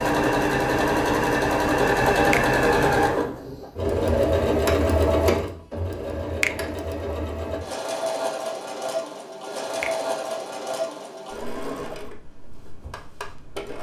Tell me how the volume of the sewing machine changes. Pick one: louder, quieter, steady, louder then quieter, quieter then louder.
quieter.